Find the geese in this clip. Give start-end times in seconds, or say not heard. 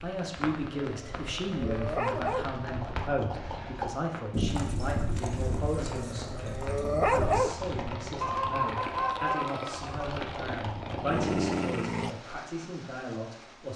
8.2-10.0.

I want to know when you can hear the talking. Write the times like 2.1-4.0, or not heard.
0.0-13.7.